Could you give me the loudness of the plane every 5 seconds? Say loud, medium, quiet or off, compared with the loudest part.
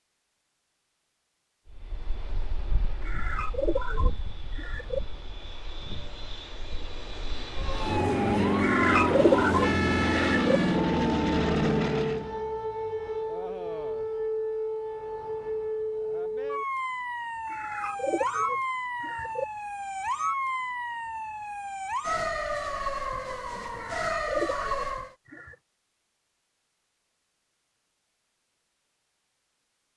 quiet, loud, loud, off, off, off.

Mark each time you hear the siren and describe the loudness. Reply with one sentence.
The siren can be heard from 7.5 to 25.1 s, at a steady volume.